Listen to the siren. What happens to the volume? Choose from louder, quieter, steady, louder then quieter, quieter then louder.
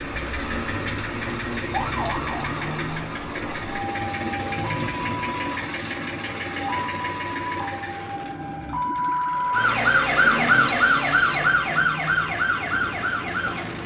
louder.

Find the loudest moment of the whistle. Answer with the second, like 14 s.
11 s.